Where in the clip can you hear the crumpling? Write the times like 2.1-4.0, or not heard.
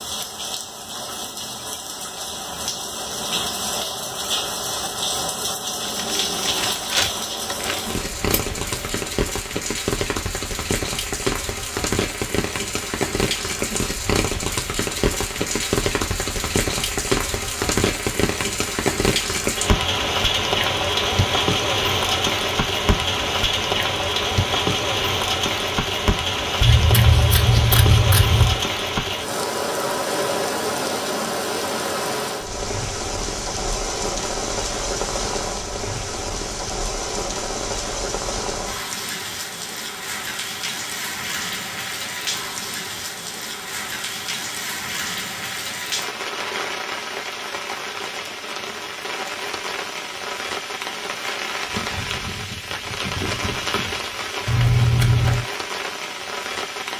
6.0-8.0.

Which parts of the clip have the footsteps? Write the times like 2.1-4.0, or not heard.
not heard.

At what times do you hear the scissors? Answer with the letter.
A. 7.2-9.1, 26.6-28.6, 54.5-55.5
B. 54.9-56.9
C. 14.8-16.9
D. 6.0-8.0
A.